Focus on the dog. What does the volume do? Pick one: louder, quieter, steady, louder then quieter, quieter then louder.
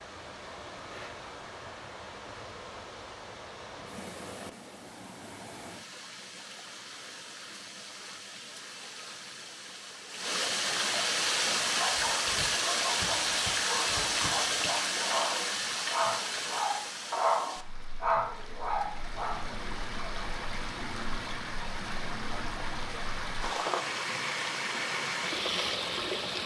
louder.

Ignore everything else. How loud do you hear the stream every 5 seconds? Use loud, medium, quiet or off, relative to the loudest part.
quiet, quiet, loud, medium, medium, loud.